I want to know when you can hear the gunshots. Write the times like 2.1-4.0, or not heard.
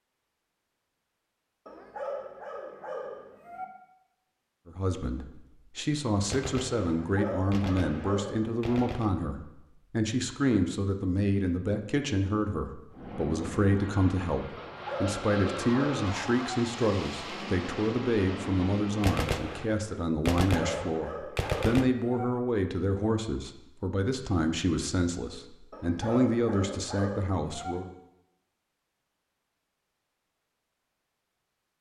6.3-9.1, 19.0-21.9.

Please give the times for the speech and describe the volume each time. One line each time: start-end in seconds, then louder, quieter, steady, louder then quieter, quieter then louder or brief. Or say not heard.
4.7-27.9 steady.